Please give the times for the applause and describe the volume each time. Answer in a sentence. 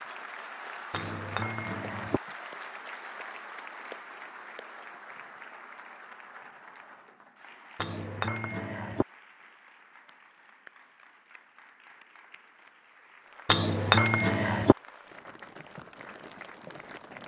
The applause can be heard from 0.0 to 17.2 s, getting quieter then louder.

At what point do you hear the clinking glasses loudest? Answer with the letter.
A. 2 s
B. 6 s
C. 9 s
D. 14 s
D.